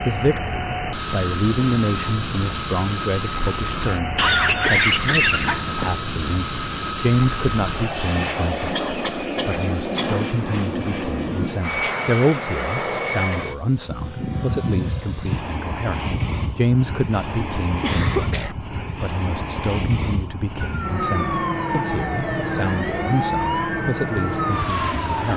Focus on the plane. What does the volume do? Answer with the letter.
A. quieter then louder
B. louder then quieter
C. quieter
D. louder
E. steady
E.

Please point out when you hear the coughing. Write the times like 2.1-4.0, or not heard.
4.2-6.0, 8.7-10.2, 17.8-18.6.